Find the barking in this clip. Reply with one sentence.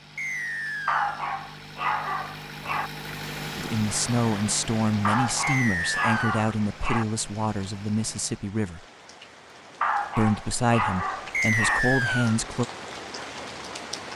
You can hear the barking from 0.8 to 2.9 s, from 5.0 to 7.0 s and from 9.8 to 11.8 s.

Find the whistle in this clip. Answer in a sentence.
The whistle can be heard from 0.1 to 1.2 s, from 5.4 to 6.5 s and from 11.3 to 12.4 s.